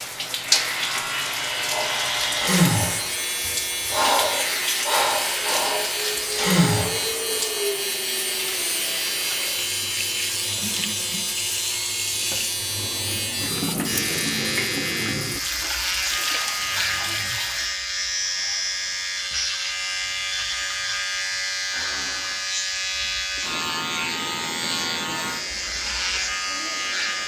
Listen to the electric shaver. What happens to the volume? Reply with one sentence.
The volume of the electric shaver stays about the same.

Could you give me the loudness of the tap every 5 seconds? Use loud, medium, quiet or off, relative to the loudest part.
loud, loud, loud, loud, quiet, quiet.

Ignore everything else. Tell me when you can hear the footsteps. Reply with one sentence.
The footsteps can't be heard in this clip.